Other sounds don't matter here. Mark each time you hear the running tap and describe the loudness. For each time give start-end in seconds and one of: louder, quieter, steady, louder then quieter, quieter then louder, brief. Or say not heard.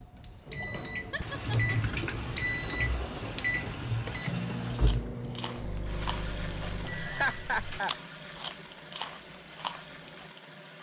0.0-10.7 quieter.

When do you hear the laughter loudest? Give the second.
7 s.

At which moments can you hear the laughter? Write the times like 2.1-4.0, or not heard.
1.1-1.9, 6.9-7.9.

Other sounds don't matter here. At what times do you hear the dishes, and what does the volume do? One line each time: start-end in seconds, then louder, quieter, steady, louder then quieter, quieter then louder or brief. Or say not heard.
not heard.